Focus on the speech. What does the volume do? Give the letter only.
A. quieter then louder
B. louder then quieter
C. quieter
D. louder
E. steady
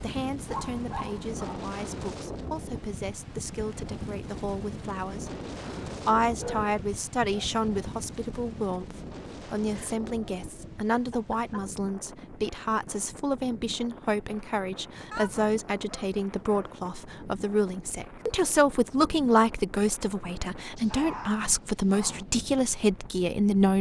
D.